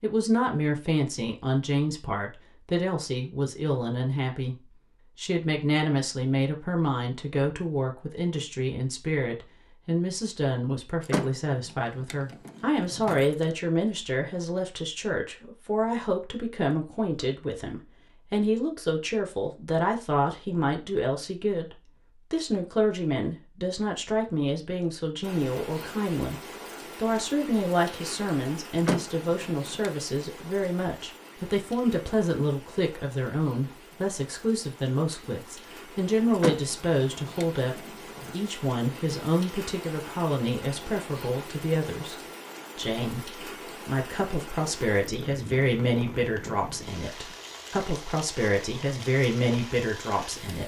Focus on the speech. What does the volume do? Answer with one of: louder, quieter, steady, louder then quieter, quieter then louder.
steady.